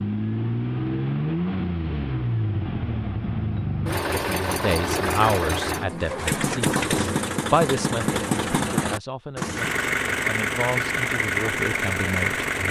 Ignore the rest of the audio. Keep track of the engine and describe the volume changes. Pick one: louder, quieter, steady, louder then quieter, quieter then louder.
steady.